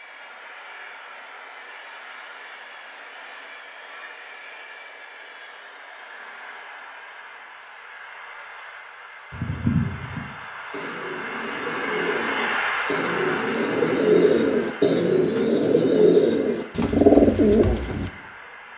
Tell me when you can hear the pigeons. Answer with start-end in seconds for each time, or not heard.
9.3-18.1.